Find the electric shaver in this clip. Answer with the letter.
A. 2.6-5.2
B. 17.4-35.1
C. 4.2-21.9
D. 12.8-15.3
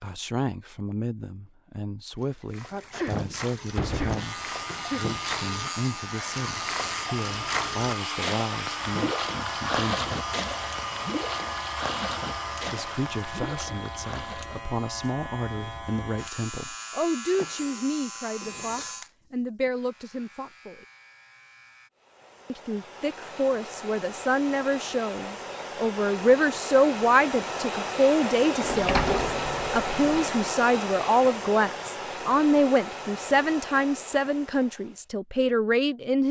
C.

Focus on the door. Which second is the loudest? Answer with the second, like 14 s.
29 s.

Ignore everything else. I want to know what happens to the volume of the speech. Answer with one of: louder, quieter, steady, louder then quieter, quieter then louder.
louder.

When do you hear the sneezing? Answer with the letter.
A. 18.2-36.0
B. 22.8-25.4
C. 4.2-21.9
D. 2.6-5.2
D.